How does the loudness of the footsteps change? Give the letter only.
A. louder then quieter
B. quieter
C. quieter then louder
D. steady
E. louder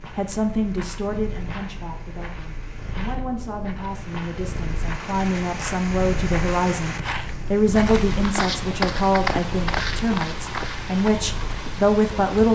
E.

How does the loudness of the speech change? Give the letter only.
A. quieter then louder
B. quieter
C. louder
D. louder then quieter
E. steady
C.